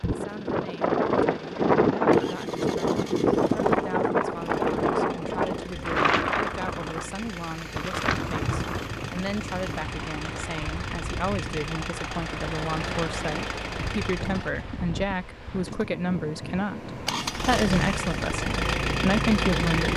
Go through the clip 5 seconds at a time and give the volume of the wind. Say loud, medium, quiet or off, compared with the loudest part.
loud, medium, quiet, quiet.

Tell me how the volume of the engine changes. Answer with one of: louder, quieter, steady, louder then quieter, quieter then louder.
louder.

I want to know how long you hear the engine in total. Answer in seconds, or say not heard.
20 s.